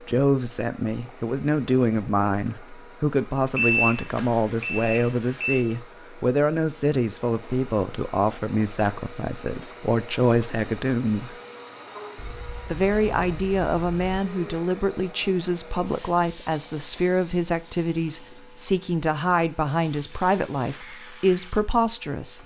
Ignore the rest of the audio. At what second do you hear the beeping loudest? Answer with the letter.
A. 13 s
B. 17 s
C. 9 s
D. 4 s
D.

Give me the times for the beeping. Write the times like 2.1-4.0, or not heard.
3.5-5.7, 12.2-14.2.